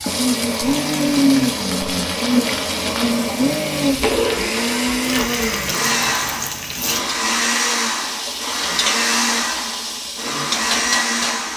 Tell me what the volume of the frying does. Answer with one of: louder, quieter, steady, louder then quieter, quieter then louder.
steady.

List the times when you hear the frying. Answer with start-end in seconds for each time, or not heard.
0.0-11.5.